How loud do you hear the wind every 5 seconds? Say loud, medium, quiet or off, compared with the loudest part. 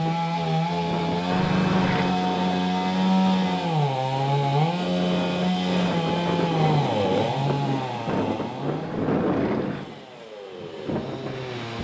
medium, loud, medium.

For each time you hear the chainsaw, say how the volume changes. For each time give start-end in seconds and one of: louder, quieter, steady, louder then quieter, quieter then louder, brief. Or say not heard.
0.0-11.7 quieter.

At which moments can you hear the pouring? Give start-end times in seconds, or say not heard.
1.3-2.2, 8.8-9.8.